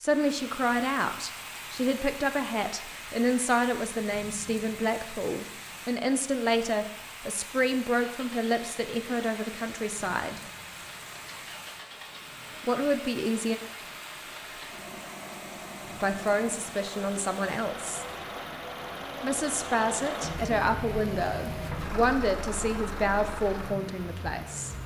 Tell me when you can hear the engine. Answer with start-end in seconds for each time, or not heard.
8.1-24.8.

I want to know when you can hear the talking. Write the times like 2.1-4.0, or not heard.
0.0-10.4, 12.6-13.6, 15.9-18.1, 19.2-24.8.